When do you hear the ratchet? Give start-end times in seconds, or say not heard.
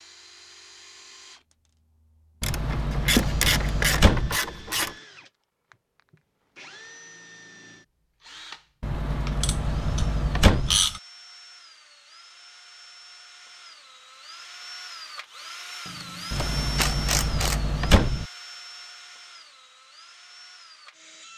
2.4-5.0, 9.3-11.0, 15.8-17.6.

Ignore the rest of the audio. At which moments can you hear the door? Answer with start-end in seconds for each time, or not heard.
2.4-4.4, 8.8-10.8, 16.3-18.2.